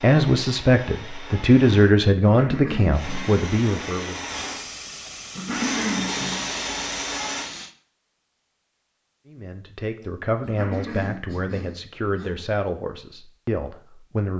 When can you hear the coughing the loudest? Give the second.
6 s.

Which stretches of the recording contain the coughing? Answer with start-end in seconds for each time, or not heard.
2.2-3.2, 5.3-6.5, 10.4-12.4.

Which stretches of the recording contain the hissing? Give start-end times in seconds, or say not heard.
4.2-7.8.